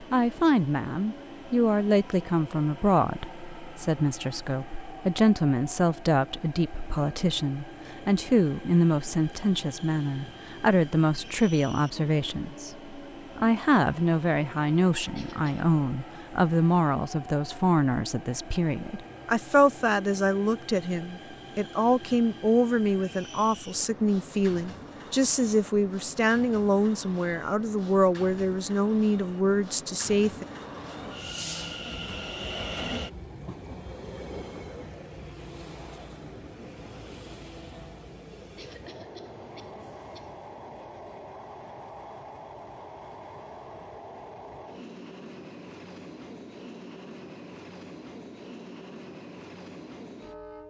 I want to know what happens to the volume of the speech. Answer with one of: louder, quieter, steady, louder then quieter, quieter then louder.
steady.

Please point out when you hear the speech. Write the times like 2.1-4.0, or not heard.
0.0-30.4.